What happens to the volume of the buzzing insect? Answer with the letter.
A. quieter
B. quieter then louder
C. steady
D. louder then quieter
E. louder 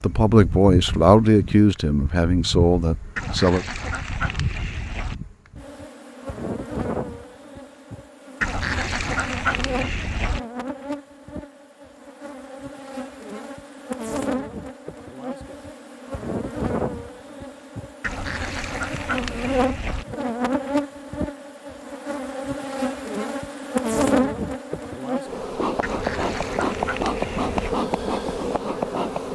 E.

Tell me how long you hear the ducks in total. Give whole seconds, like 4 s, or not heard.
8 s.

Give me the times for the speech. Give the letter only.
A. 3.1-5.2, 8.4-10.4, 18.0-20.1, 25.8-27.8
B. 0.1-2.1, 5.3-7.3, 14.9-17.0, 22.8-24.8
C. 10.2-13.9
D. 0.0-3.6
D.